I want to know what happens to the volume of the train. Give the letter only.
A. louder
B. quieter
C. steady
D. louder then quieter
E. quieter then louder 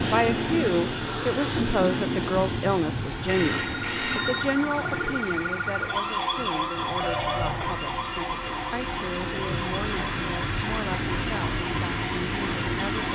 E.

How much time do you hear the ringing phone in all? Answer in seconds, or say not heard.
3 s.